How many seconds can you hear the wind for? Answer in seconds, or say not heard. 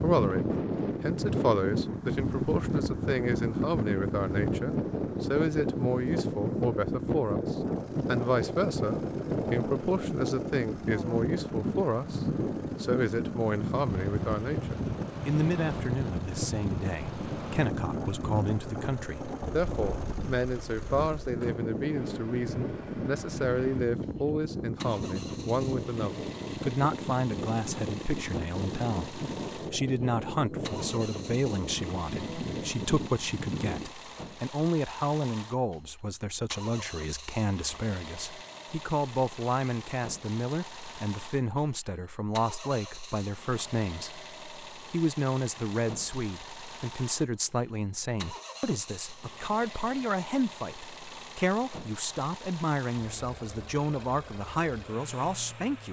34 s.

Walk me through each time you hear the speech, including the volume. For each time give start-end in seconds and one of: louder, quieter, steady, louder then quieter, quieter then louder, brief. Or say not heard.
0.0-55.8 steady.